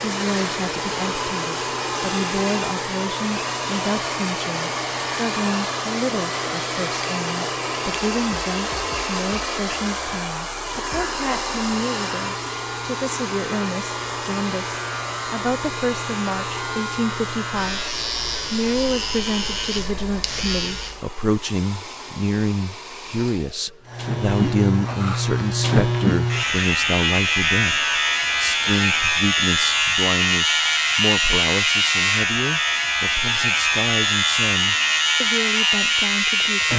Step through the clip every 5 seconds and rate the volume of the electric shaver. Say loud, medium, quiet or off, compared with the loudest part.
quiet, quiet, quiet, medium, medium, loud, loud, loud.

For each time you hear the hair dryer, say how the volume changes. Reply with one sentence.
The hair dryer can be heard from 0.0 to 36.7 s, getting quieter.